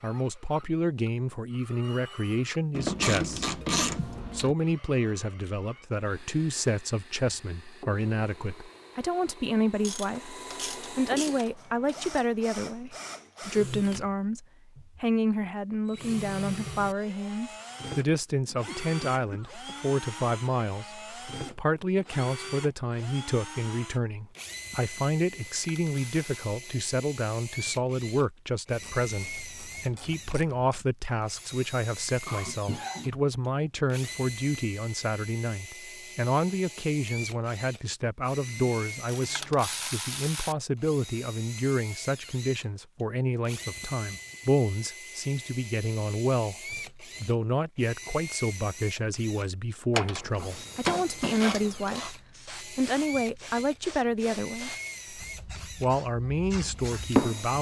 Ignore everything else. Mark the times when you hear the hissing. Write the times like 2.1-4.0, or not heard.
50.5-57.5.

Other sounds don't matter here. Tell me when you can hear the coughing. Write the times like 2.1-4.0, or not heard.
18.4-19.9, 32.2-33.2.